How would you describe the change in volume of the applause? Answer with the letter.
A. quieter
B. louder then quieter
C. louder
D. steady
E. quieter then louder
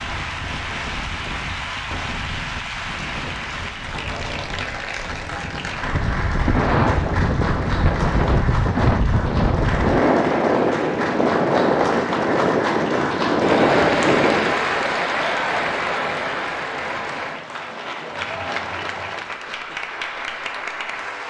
B.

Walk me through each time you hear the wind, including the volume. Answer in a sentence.
The wind can be heard from 0.0 to 14.6 s, getting louder.